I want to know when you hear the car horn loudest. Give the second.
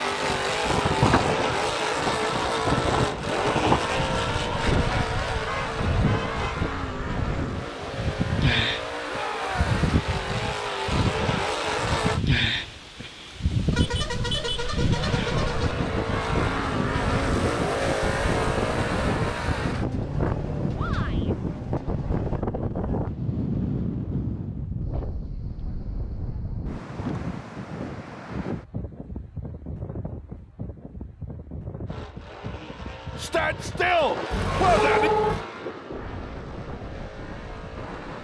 35 s.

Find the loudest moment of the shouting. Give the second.
34 s.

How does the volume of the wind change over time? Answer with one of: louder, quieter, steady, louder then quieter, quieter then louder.
quieter.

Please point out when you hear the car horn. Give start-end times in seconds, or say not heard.
5.5-6.5, 13.7-15.8, 34.3-35.5.